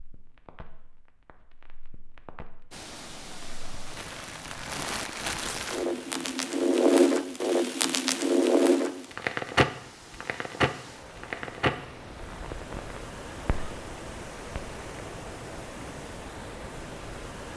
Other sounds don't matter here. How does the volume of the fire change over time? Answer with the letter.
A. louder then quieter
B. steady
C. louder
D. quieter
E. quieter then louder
A.